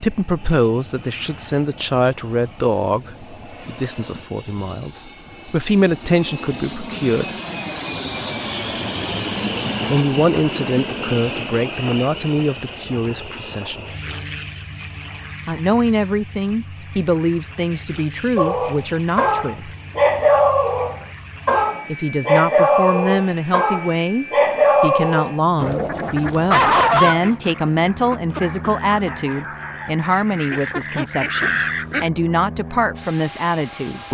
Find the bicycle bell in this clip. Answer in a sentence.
The bicycle bell can't be heard in this clip.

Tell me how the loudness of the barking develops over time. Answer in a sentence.
The loudness of the barking goes down.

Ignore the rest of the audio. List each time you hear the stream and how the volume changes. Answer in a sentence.
You can't hear the stream here.